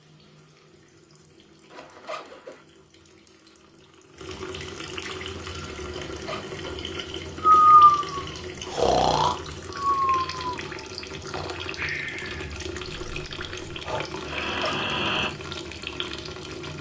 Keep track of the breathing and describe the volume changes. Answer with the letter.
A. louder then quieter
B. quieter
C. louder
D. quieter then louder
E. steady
D.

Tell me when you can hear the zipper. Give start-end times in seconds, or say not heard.
1.7-2.6, 5.8-6.6, 14.2-14.8.